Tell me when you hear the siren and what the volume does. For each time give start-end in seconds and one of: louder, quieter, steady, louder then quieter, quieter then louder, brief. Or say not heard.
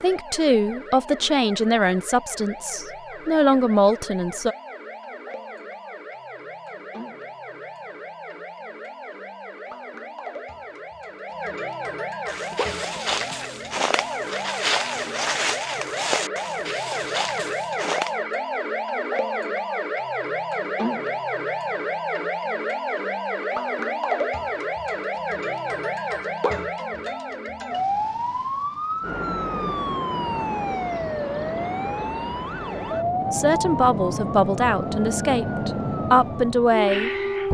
0.0-37.4 louder.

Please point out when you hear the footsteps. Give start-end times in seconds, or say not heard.
12.2-18.1.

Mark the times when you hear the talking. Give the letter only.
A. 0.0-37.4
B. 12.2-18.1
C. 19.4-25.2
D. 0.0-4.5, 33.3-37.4
D.